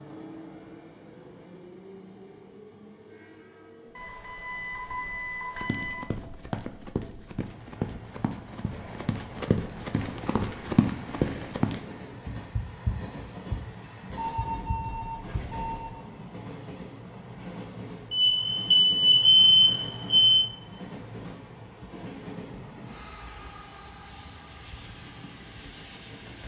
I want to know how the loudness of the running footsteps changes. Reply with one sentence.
The volume of the running footsteps goes up, then down.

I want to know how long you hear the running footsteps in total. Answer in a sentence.
You can hear the running footsteps for 10 seconds altogether.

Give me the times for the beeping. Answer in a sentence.
The beeping can be heard from 4.0 to 6.0 s, from 14.2 to 16.0 s and from 18.1 to 20.4 s.